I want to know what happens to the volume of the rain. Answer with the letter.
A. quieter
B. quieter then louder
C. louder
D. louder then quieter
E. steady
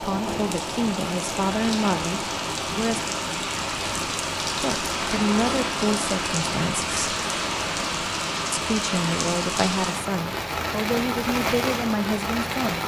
E.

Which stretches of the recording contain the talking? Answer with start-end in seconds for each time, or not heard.
0.0-3.0, 4.6-6.9, 8.6-12.8.